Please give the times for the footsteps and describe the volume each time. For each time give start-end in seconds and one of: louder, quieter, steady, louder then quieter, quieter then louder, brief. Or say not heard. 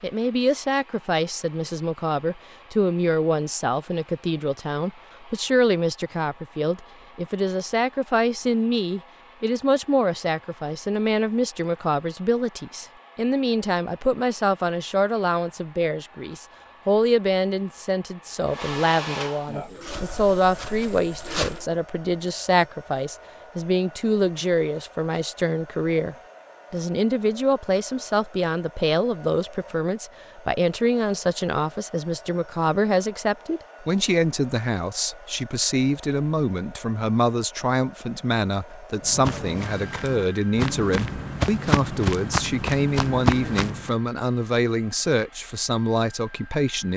19.4-21.6 brief
39.0-43.9 louder.